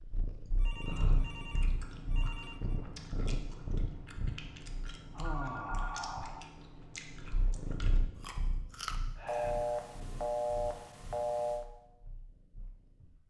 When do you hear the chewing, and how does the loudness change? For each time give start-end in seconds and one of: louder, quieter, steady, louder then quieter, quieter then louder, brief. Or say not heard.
0.8-8.9 steady.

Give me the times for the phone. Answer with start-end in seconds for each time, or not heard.
0.5-2.8, 5.2-6.0, 9.2-11.7.